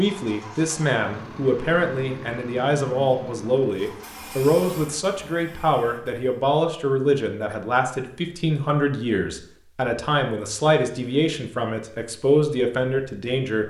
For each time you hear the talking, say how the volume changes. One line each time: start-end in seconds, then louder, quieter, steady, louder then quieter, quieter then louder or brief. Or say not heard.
0.0-13.6 steady.